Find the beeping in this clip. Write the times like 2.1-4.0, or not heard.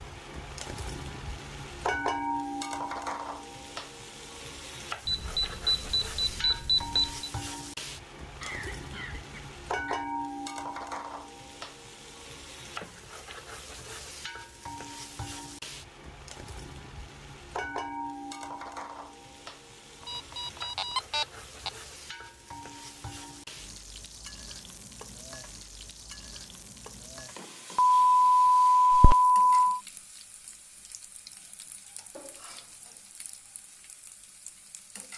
5.0-7.3, 20.0-21.7, 27.8-29.8.